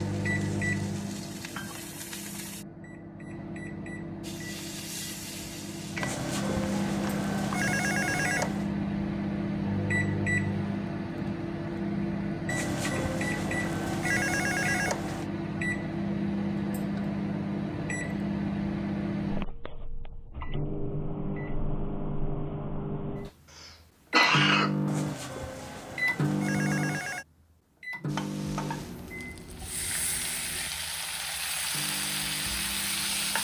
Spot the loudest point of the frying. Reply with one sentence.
The loudest moment of the frying is at 33 seconds.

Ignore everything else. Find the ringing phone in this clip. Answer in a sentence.
You can hear the ringing phone from 6.0 to 8.7 s, from 12.4 to 15.2 s and from 24.9 to 27.2 s.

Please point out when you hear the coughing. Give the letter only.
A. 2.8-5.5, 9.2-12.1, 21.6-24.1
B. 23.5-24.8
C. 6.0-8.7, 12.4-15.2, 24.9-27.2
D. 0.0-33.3
B.